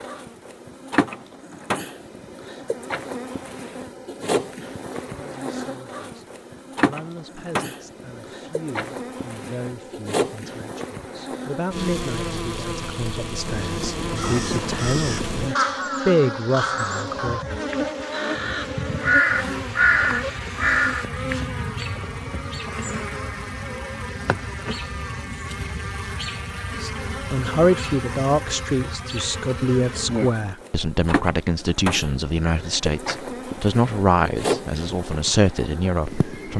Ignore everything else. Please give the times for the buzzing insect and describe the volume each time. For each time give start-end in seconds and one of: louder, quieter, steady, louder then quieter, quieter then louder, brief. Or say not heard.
0.0-36.5 steady.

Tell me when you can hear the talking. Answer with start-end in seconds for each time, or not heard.
5.0-17.4, 26.8-36.5.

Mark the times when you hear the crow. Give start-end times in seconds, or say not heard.
13.4-21.4.